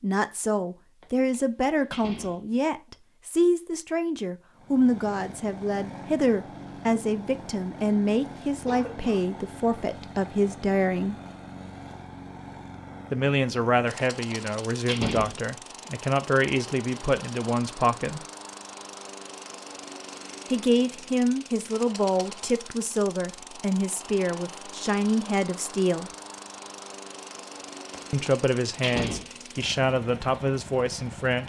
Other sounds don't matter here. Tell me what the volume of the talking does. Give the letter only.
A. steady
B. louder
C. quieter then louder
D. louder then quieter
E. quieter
A.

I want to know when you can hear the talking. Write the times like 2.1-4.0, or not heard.
0.0-11.2, 13.1-18.2, 20.5-26.1, 28.1-31.4.